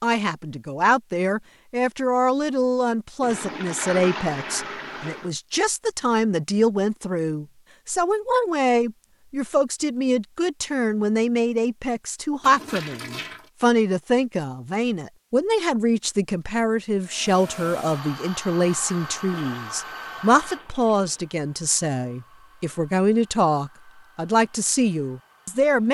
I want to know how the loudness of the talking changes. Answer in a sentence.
The loudness of the talking stays about the same.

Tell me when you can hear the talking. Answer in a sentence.
The talking can be heard from 0.0 to 25.8 s.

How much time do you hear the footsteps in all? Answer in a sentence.
The footsteps can't be heard in this clip.